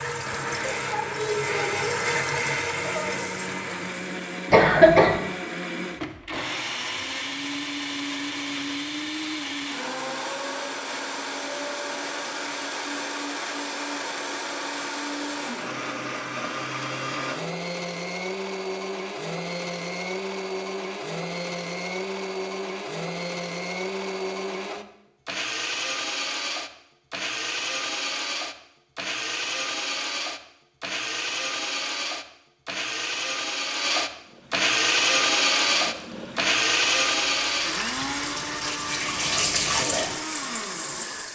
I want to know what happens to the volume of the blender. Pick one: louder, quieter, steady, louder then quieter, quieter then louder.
louder.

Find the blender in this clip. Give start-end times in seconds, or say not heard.
0.1-41.3.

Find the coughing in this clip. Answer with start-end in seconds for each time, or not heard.
4.5-5.2.